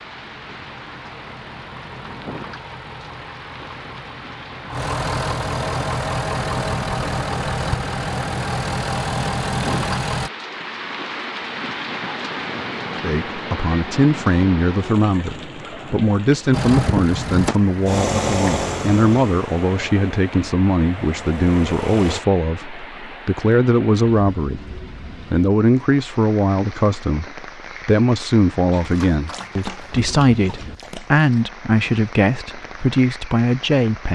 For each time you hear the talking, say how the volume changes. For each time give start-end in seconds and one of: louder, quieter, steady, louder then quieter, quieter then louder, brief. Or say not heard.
13.0-34.1 steady.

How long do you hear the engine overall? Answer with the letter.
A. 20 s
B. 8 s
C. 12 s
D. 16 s
D.